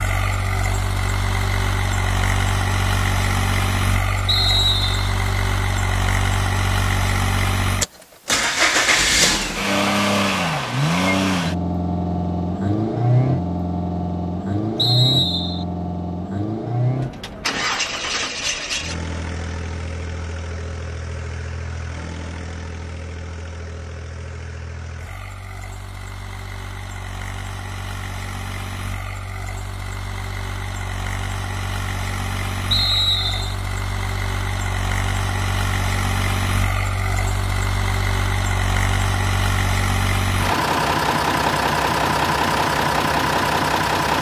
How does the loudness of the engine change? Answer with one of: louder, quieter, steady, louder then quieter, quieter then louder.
quieter then louder.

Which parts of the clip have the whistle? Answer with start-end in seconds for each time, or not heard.
4.2-5.2, 14.8-15.7, 32.7-33.5.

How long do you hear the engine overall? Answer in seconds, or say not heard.
44 s.